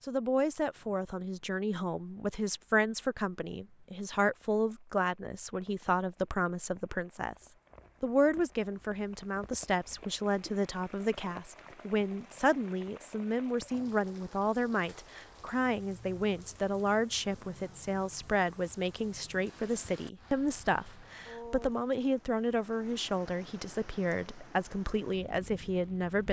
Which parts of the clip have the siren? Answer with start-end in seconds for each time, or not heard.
not heard.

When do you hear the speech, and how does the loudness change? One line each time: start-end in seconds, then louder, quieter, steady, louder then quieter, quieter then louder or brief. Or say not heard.
0.0-26.2 steady.